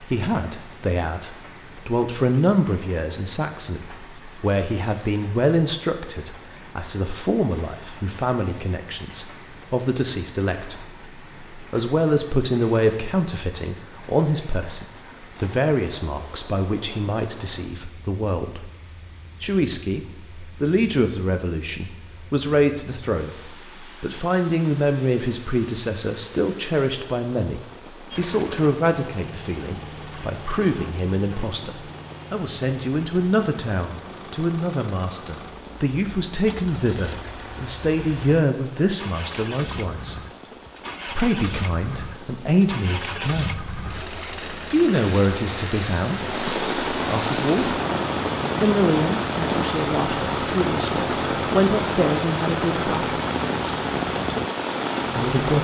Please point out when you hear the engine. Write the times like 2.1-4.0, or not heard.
28.1-55.5.